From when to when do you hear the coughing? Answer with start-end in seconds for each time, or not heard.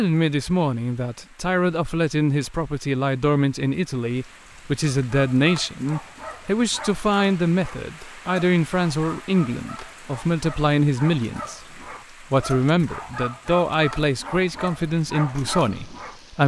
not heard.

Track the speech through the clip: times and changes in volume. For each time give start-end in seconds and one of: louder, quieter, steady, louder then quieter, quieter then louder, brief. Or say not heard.
0.0-16.4 steady.